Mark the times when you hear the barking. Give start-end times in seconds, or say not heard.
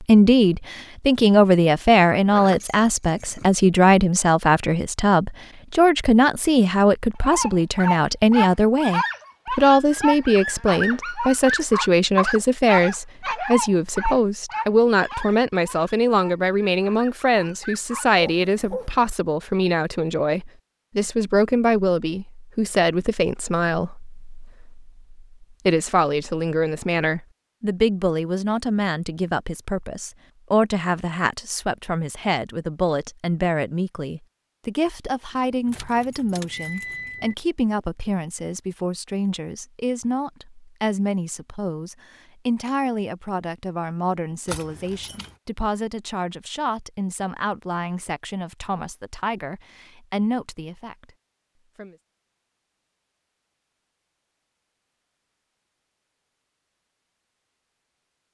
7.2-18.9.